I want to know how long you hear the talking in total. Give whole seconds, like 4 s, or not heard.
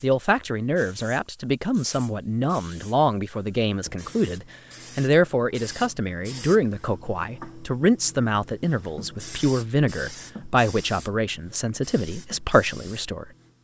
13 s.